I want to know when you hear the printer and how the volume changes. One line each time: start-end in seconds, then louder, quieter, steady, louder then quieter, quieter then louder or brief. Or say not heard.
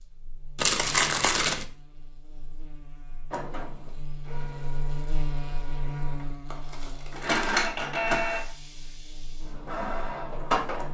3.3-10.9 louder then quieter.